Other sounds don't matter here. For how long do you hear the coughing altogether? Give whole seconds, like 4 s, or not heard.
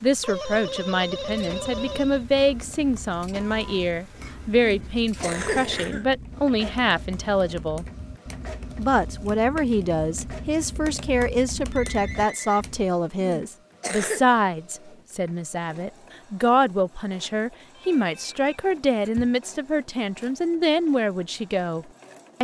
3 s.